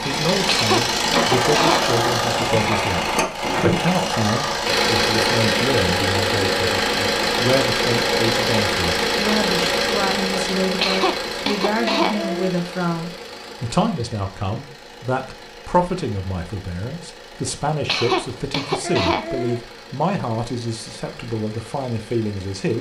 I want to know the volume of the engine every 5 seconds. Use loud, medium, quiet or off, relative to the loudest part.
loud, loud, medium, quiet, quiet.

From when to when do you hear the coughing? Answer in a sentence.
You can hear the coughing from 0.5 to 2.0 s, from 10.8 to 12.5 s and from 17.9 to 19.6 s.